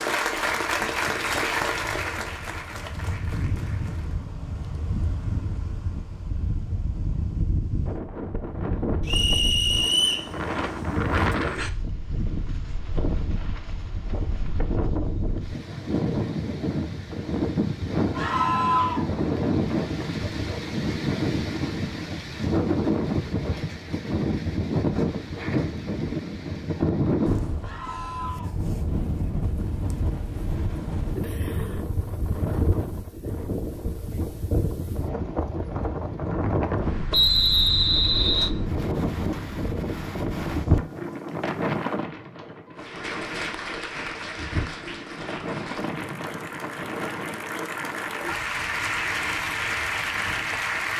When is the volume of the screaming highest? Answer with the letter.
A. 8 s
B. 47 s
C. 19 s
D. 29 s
C.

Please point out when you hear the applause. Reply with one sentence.
The applause can be heard from 0.0 to 4.3 s and from 42.8 to 50.9 s.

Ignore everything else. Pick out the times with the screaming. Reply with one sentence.
You can hear the screaming from 18.1 to 19.1 s and from 27.6 to 28.6 s.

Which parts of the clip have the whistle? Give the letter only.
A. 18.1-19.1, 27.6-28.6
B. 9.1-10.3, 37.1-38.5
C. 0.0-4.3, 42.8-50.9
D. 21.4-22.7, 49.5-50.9
B.